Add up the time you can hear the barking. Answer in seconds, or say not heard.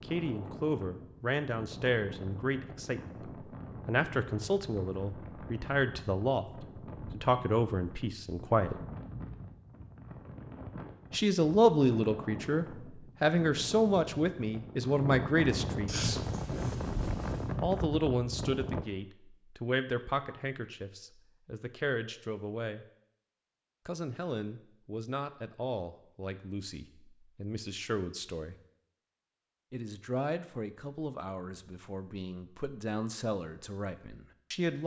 2 s.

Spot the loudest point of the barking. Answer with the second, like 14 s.
16 s.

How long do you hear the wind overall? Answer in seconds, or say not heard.
19 s.